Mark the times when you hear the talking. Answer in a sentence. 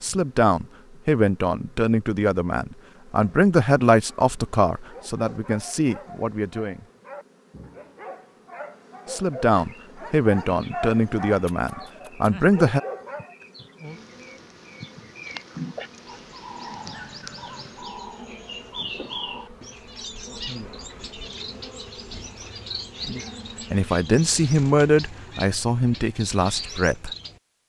The talking can be heard from 0.0 to 6.8 s, from 9.1 to 12.8 s and from 23.7 to 27.1 s.